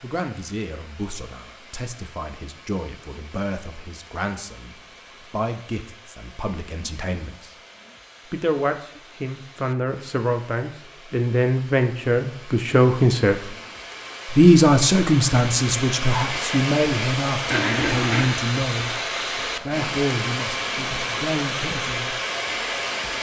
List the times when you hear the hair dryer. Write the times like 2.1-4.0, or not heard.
0.0-23.1.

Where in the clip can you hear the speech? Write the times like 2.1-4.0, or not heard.
0.0-7.5, 8.3-13.5, 14.3-22.2.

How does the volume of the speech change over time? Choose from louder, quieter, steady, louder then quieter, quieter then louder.
louder then quieter.